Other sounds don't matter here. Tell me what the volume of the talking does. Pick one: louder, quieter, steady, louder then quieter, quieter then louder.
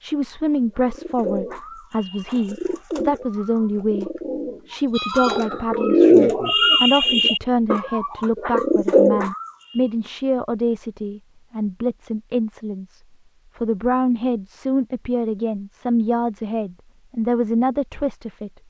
steady.